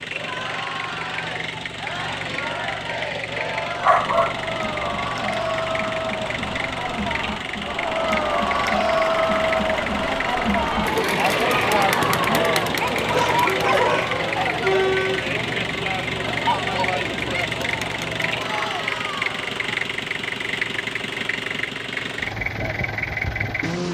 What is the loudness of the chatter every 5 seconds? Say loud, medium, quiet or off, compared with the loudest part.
medium, loud, loud, medium, off.